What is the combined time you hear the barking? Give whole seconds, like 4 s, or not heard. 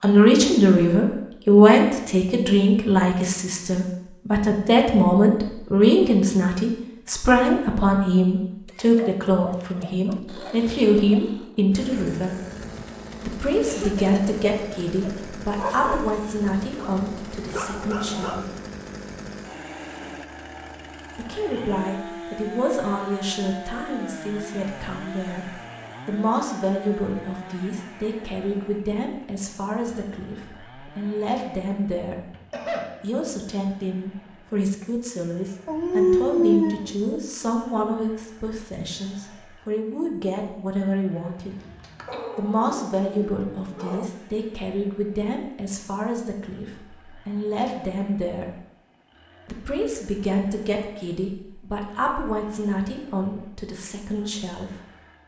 9 s.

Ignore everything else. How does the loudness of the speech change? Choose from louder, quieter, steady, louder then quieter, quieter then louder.
quieter.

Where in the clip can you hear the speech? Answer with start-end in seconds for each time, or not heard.
0.0-12.3, 13.2-18.4, 21.1-32.1, 33.0-41.5, 42.4-48.5, 49.5-54.7.